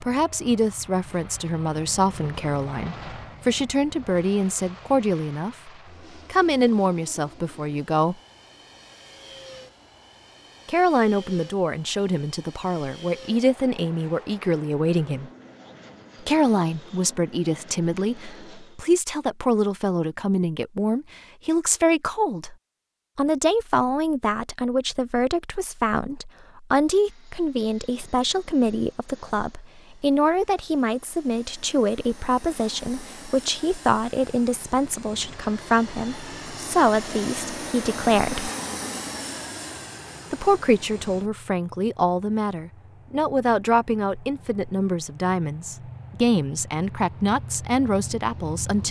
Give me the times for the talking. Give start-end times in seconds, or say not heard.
0.0-5.7, 6.3-8.2, 10.7-15.3, 16.2-22.6, 23.1-38.5, 40.3-48.8.